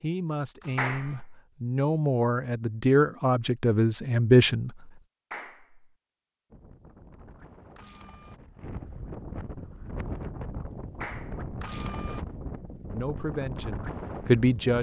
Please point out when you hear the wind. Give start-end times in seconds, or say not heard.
6.5-14.7.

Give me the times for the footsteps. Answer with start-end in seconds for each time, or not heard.
not heard.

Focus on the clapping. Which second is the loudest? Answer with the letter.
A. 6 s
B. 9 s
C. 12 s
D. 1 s
D.